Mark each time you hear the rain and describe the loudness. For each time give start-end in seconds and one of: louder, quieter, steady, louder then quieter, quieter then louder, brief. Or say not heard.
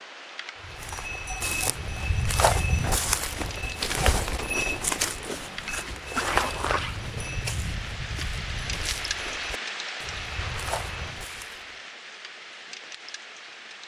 0.0-13.8 louder then quieter.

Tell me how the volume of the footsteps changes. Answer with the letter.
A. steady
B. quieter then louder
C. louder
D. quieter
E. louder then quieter
D.